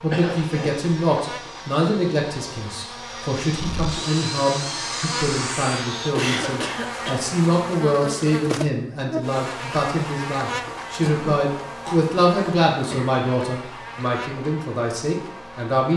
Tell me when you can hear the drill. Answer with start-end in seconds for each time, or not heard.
0.2-6.2.